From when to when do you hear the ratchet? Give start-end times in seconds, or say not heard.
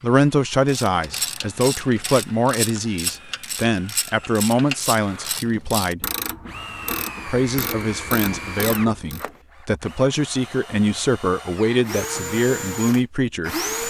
0.7-9.2.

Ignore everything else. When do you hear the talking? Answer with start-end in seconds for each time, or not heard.
0.0-6.0, 7.2-13.8.